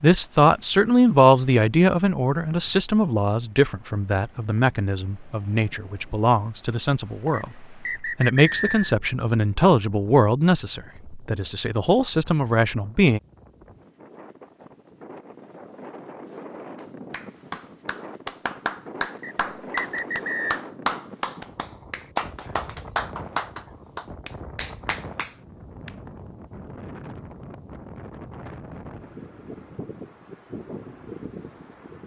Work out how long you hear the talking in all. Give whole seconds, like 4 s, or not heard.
13 s.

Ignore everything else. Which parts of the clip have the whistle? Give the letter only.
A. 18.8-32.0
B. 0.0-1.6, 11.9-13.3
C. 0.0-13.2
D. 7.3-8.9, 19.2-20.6
D.